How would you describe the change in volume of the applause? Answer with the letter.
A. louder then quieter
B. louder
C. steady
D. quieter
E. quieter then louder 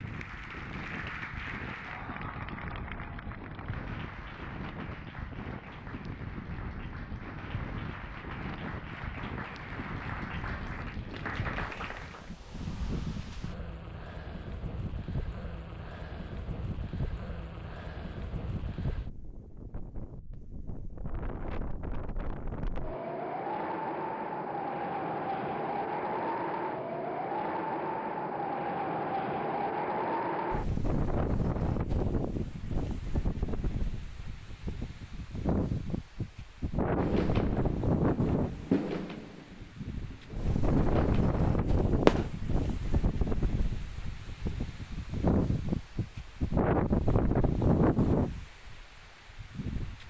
E.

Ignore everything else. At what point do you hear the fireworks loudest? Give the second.
42 s.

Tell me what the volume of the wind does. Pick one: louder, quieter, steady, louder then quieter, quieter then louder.
louder.